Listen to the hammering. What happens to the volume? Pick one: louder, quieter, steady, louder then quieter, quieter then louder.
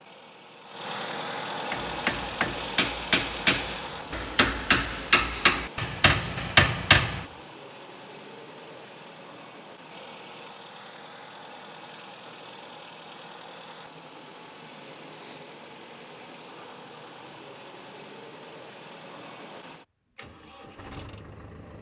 louder.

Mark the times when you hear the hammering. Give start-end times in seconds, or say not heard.
1.7-7.2.